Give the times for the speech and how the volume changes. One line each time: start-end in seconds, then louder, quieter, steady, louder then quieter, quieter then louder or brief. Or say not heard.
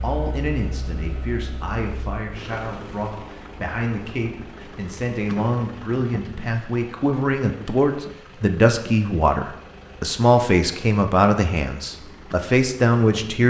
0.0-13.4 louder.